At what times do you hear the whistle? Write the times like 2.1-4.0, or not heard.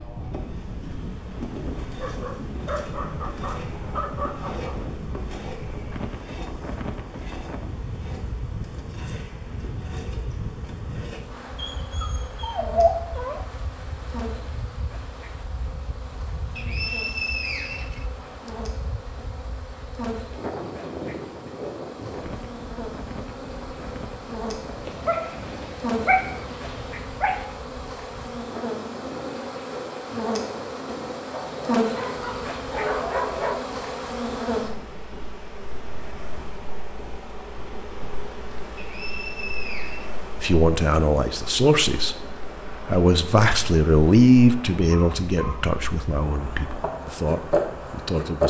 16.6-18.5, 38.8-40.2.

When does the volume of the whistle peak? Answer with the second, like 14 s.
17 s.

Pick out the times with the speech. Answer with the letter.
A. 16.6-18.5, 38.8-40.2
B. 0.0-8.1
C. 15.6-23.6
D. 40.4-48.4
D.